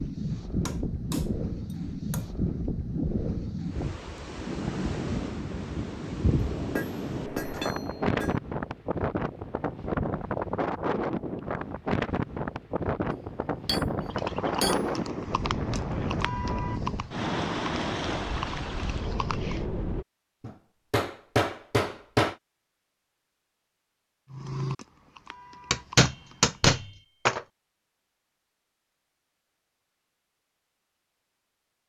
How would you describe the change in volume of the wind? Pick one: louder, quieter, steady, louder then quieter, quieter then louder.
steady.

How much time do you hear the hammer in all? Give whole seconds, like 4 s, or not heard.
9 s.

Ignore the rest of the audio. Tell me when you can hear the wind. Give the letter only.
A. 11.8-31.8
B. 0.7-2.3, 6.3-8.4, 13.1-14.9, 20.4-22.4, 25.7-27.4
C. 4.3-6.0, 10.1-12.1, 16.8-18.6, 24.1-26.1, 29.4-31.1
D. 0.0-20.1
D.